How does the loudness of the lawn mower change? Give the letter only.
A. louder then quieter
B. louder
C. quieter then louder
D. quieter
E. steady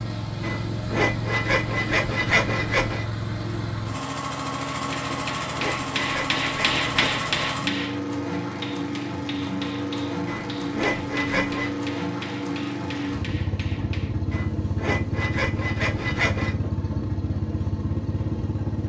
E.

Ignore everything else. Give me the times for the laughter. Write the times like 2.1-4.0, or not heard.
not heard.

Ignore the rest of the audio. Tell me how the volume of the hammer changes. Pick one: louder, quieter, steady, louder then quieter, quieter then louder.
quieter.